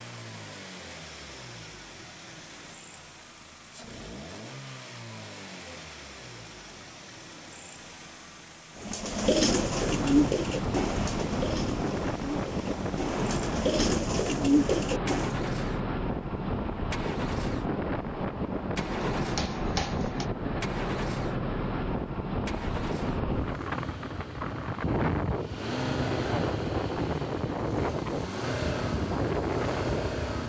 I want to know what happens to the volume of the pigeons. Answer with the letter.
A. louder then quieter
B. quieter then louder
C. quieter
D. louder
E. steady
B.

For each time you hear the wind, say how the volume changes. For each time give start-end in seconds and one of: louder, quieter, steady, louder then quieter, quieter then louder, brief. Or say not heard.
9.4-30.4 steady.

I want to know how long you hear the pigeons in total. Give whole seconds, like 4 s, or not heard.
7 s.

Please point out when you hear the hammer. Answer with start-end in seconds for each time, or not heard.
18.8-20.3.